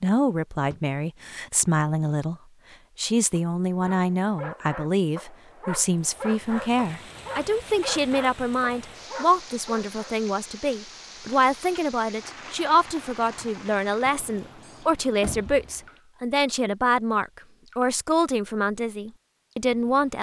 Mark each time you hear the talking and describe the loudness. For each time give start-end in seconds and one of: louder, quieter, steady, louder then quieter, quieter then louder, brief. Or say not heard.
0.0-2.4 brief
3.0-20.1 steady.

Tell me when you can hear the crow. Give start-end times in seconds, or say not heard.
not heard.